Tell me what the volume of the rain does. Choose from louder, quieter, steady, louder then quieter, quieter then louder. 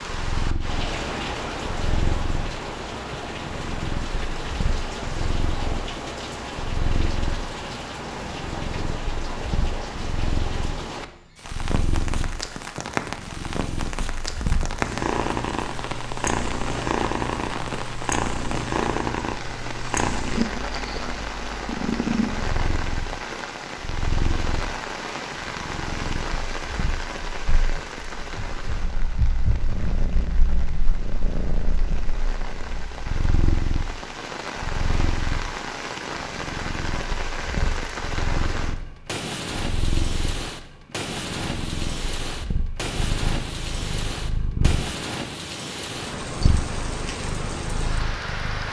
steady.